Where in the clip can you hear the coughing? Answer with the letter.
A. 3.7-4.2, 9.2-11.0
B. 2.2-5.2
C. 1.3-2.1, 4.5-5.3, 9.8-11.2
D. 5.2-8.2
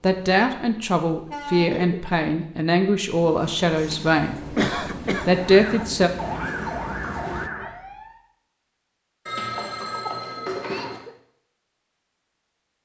C.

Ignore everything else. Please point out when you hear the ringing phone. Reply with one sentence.
You can hear the ringing phone from 3.7 to 4.2 s and from 9.2 to 11.0 s.